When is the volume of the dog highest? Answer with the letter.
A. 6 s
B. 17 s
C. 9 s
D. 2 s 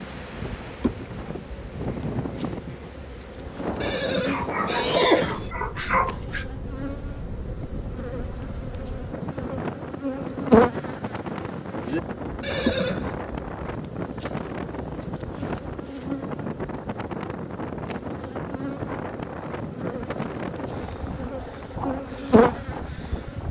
A.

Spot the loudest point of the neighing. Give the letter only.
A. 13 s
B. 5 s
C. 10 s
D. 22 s
B.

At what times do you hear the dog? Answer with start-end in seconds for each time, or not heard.
4.2-6.5.